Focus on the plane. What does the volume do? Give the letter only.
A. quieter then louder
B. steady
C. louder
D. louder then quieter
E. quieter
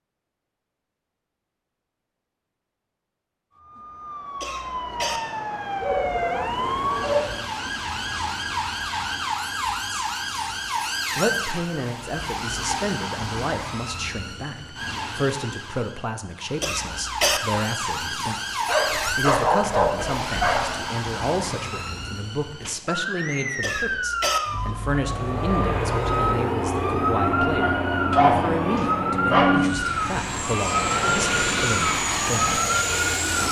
B.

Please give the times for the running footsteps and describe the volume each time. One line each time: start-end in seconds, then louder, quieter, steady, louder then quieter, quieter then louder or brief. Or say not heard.
not heard.